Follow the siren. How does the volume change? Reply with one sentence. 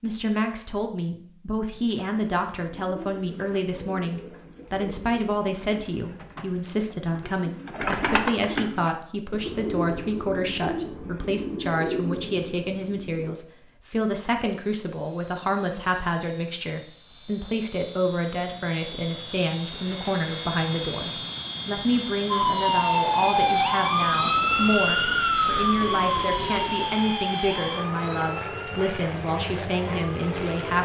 The volume of the siren goes down.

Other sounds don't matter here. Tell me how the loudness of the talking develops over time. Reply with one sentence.
The volume of the talking stays about the same.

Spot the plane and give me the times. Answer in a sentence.
You can hear the plane from 14.2 to 30.8 s.